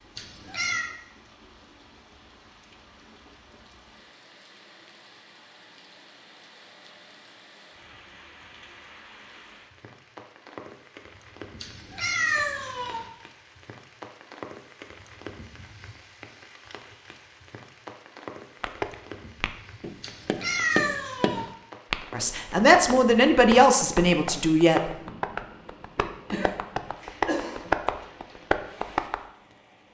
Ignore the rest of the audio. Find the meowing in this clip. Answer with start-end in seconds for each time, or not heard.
0.1-0.8, 11.6-13.1, 20.0-21.5.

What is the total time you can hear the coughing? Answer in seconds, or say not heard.
2 s.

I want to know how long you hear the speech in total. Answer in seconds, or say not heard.
3 s.